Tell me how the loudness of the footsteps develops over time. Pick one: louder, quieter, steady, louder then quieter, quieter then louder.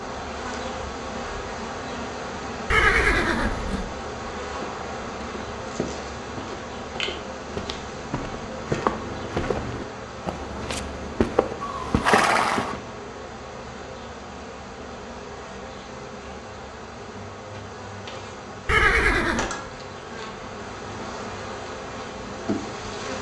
louder.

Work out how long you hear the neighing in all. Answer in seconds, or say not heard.
3 s.